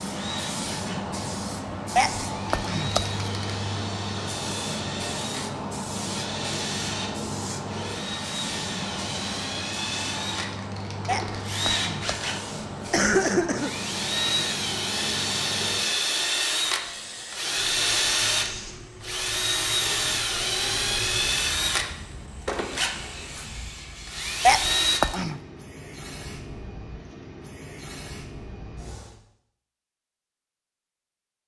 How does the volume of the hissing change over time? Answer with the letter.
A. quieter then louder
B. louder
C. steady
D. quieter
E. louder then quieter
D.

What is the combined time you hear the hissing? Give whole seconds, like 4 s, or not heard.
29 s.